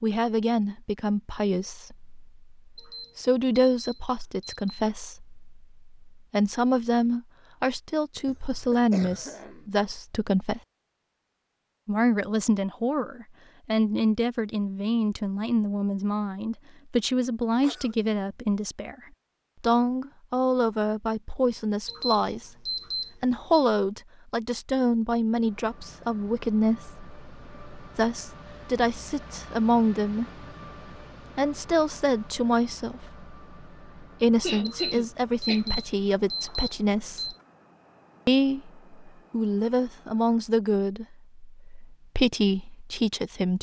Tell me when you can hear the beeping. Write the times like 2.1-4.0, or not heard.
2.8-4.8, 21.9-23.6, 34.6-37.4.